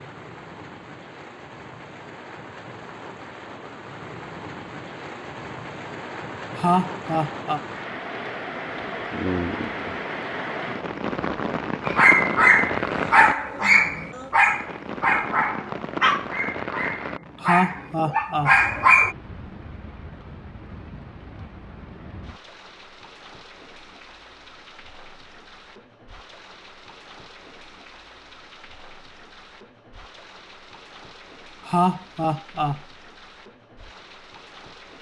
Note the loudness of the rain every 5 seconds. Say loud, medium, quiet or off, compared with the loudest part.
medium, loud, loud, medium, quiet, quiet, quiet.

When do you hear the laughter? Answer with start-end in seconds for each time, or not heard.
6.5-7.6, 17.4-18.6, 31.6-32.8.